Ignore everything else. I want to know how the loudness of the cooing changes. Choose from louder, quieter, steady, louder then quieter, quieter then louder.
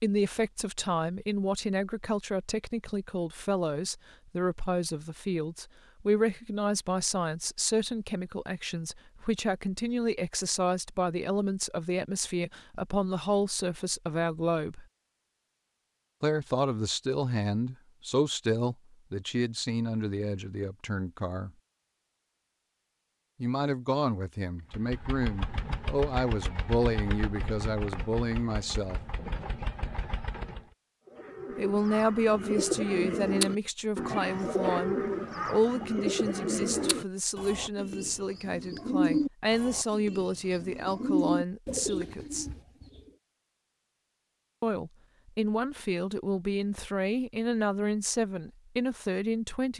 steady.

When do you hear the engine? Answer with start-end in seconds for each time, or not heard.
24.7-30.6.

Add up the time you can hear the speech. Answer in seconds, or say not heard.
42 s.